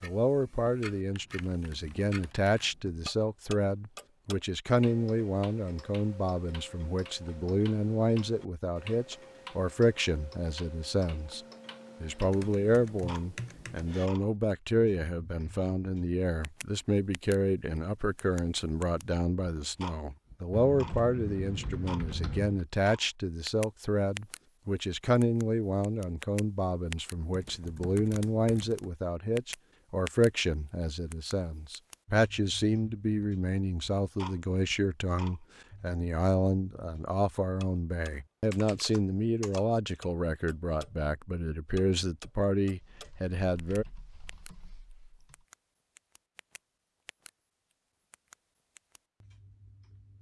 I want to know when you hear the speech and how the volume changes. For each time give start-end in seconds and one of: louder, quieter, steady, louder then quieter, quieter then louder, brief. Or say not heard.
0.0-11.4 steady
12.0-43.9 steady.